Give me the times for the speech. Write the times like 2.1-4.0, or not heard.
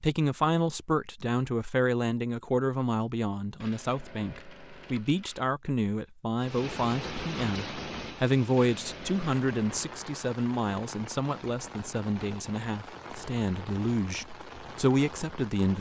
0.0-15.7.